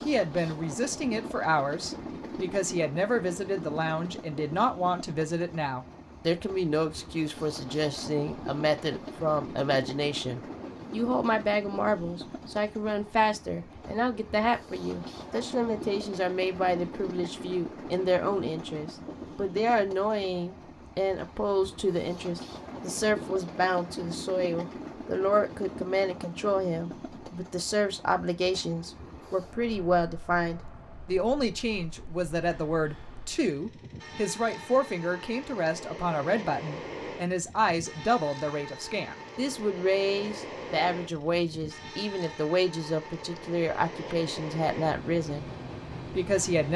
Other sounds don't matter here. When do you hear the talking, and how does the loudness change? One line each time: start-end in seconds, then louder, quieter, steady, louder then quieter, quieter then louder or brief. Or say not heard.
0.1-45.5 steady
46.1-46.7 brief.